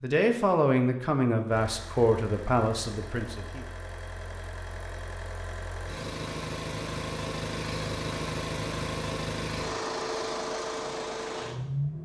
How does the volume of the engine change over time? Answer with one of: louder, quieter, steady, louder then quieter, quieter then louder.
louder.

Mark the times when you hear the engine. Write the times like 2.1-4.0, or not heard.
1.4-11.9.